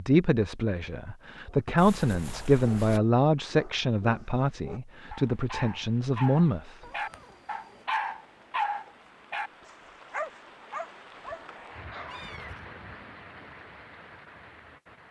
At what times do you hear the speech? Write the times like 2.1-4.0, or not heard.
0.0-6.8.